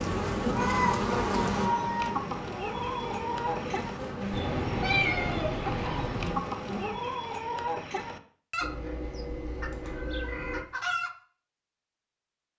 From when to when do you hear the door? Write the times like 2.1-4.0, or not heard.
not heard.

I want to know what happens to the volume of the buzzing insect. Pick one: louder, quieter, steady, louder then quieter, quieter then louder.
quieter.